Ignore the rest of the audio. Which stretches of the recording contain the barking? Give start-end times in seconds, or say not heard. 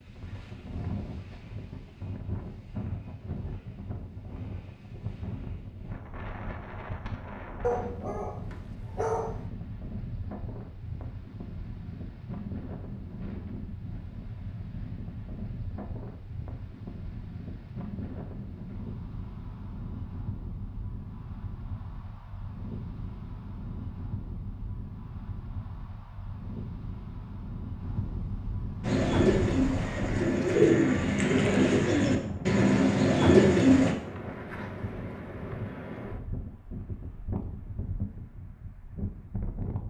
7.6-9.4.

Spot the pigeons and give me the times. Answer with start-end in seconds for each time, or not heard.
28.8-34.0.